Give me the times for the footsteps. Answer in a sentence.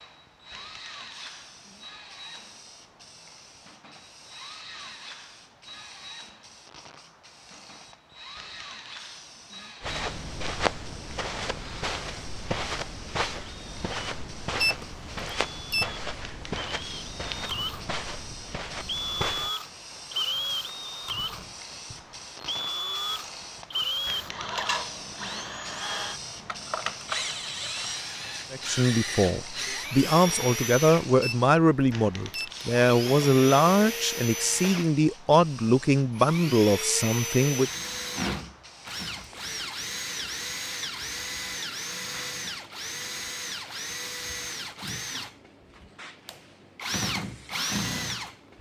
You can hear the footsteps from 9.8 to 19.5 s.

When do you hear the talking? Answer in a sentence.
You can hear the talking from 28.5 to 37.7 s.